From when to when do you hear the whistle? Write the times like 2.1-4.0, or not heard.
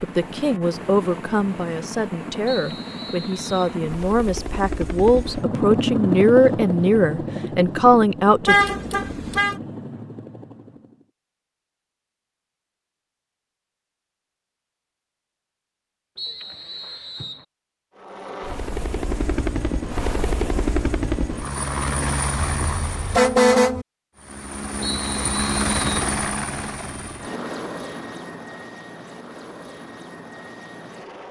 2.5-3.8, 16.1-17.4, 24.8-26.1.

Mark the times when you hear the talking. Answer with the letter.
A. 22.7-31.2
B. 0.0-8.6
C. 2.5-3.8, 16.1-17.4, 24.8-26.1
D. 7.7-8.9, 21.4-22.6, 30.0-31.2
B.